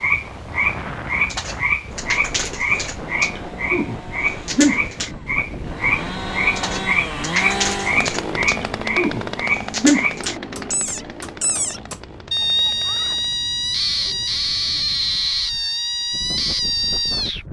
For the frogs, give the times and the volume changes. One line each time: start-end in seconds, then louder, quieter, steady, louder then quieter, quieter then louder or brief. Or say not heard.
0.0-17.4 steady.